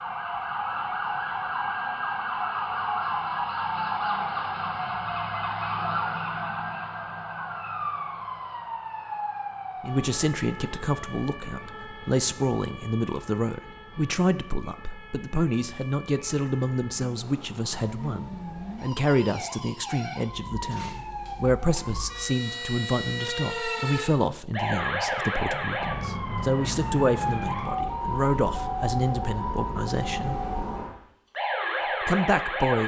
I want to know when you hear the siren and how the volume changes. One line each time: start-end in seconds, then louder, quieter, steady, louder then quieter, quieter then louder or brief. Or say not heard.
0.0-32.8 quieter then louder.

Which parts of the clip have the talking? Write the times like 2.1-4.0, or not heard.
9.8-30.4, 32.0-32.8.